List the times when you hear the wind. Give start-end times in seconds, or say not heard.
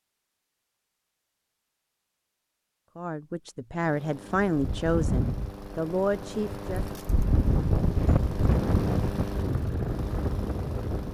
4.5-11.1.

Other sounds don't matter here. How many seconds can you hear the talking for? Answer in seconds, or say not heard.
4 s.